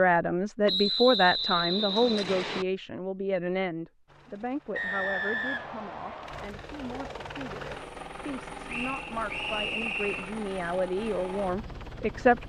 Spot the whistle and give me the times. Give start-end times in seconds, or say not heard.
0.7-2.6, 4.8-6.5, 8.7-10.3.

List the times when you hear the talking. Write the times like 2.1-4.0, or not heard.
0.0-12.4.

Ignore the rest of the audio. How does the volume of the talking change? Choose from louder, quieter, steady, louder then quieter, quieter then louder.
quieter then louder.